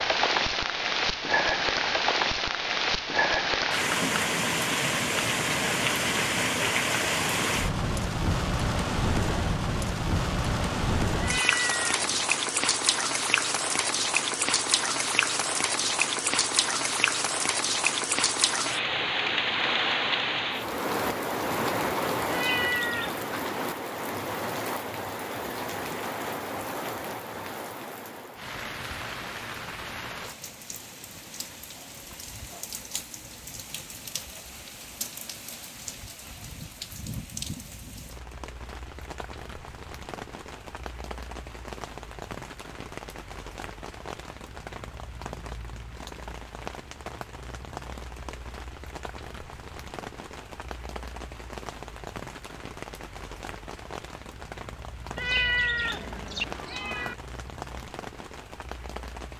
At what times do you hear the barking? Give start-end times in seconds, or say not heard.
not heard.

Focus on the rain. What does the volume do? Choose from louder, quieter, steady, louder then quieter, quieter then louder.
quieter.